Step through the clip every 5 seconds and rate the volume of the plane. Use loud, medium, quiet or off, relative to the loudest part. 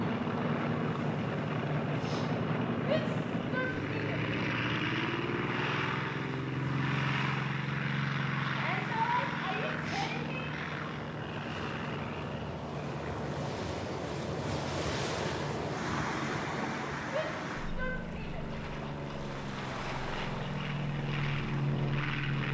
loud, loud, medium, medium, loud.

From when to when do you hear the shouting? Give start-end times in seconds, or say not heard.
2.9-4.0, 8.5-10.5, 17.1-18.5.